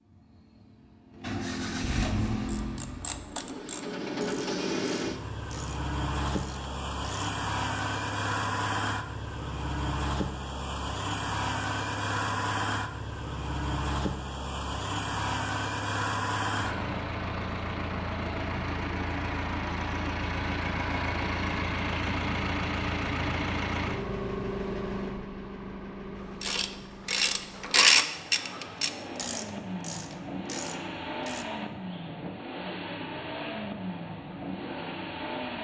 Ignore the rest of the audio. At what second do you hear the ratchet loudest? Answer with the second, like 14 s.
28 s.